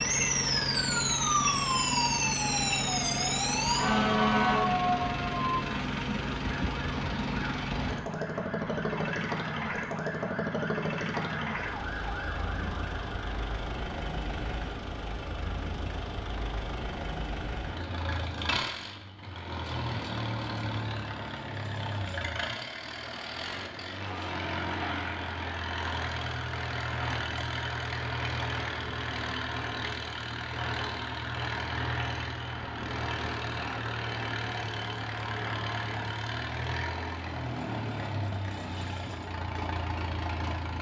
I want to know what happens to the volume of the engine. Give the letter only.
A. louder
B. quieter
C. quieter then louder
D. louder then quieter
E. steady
E.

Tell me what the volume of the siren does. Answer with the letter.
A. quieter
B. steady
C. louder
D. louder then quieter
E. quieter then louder
A.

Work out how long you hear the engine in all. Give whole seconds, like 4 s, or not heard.
41 s.